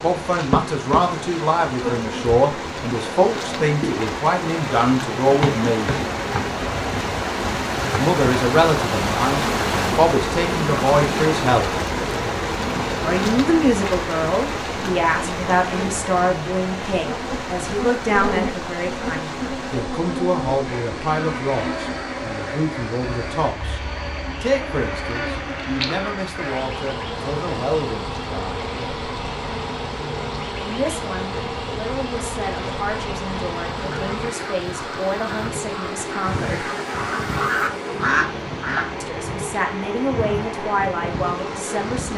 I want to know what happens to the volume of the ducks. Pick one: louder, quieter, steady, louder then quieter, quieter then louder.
louder.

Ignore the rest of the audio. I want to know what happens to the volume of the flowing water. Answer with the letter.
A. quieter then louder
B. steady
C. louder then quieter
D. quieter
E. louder
D.